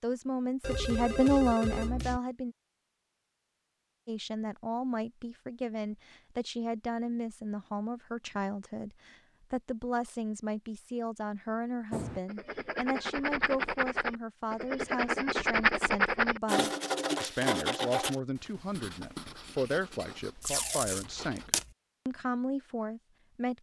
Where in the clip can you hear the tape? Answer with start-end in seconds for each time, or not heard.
20.4-21.7.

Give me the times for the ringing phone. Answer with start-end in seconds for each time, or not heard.
0.6-2.2.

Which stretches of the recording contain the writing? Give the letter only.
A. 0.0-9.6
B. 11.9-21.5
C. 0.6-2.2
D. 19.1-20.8
B.